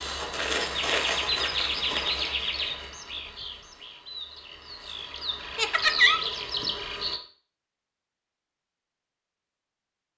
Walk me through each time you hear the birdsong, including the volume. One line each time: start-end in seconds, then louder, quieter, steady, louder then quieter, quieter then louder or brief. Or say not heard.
0.0-7.2 quieter then louder.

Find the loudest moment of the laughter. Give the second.
6 s.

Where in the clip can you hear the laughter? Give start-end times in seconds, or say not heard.
0.8-2.8, 5.5-6.2.